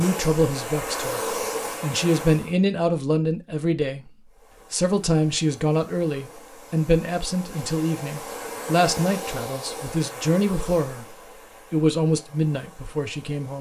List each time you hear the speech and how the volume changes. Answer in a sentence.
You can hear the speech from 0.0 to 13.5 s, at a steady volume.